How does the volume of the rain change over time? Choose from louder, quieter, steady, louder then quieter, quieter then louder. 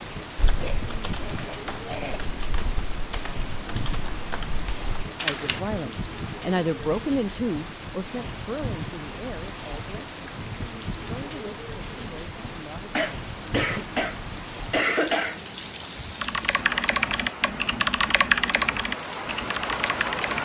steady.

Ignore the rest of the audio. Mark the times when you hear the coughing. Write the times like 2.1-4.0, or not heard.
0.6-2.2, 12.9-15.4.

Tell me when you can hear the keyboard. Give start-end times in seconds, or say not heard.
0.3-5.6, 16.2-20.4.